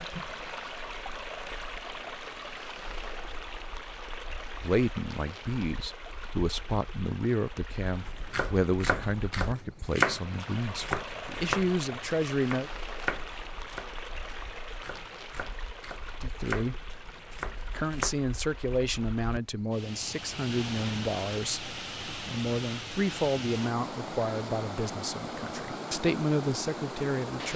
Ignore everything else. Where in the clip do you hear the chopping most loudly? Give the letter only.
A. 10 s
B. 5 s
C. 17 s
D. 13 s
A.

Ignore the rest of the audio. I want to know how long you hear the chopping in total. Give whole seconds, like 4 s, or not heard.
10 s.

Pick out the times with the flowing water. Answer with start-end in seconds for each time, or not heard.
0.0-27.5.